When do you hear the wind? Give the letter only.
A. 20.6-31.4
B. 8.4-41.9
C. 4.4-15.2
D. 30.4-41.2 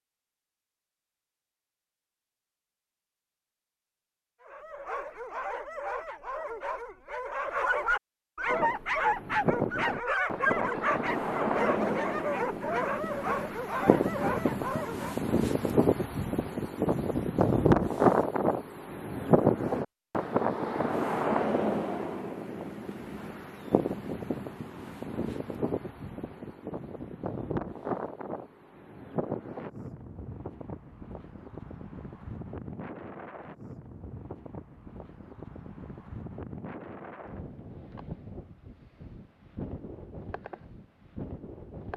B.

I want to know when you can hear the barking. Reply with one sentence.
The barking can be heard from 4.4 to 15.2 s.